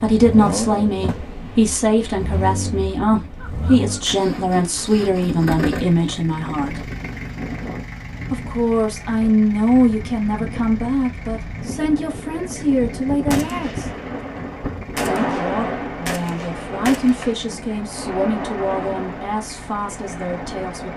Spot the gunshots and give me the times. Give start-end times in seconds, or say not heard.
13.3-17.4.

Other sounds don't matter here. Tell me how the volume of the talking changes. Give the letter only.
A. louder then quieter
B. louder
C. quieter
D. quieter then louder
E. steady
C.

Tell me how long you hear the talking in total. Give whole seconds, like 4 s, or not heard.
18 s.